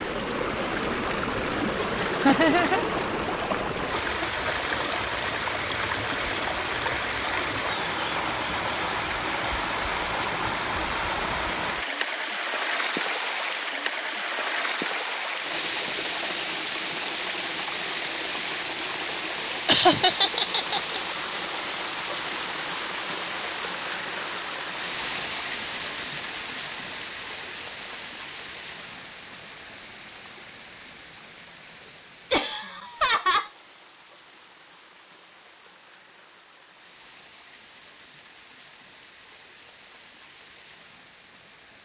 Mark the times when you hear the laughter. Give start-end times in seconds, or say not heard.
2.0-2.9, 19.6-21.0, 32.3-33.5.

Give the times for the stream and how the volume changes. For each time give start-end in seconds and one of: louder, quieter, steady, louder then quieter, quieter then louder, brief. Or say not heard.
0.0-41.7 quieter.